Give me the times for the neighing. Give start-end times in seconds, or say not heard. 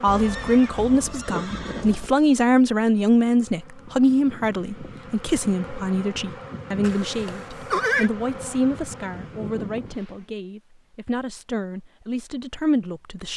0.1-2.1, 6.8-8.1.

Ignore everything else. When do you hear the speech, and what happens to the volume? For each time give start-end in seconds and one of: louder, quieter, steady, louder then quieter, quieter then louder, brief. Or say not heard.
0.0-13.3 quieter.